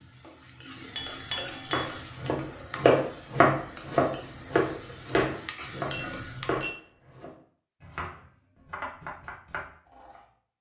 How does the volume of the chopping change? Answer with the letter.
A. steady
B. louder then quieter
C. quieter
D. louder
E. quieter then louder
C.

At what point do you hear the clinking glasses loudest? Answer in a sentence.
The loudest moment of the clinking glasses is at 1 second.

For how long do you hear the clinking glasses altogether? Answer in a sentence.
The clinking glasses can be heard for 2 seconds in total.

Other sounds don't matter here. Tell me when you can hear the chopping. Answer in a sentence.
The chopping can be heard from 1.6 to 10.2 s.